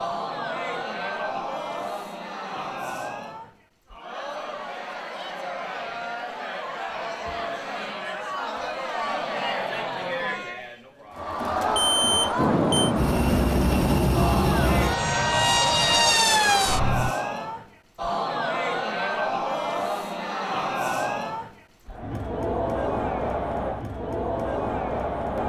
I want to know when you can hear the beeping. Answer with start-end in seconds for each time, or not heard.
11.8-12.9.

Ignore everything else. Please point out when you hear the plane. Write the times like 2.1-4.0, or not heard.
12.3-17.1.